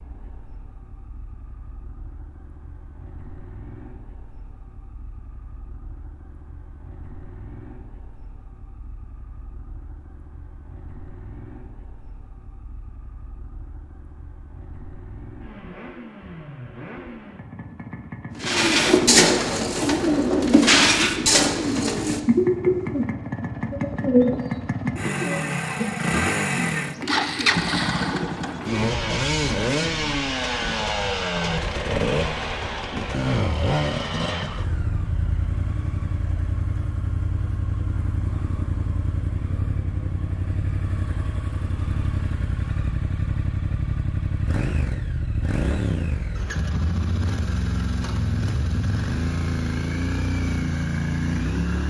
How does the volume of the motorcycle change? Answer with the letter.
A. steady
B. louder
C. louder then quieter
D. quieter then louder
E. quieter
B.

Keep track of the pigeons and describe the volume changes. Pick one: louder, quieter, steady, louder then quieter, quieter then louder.
quieter.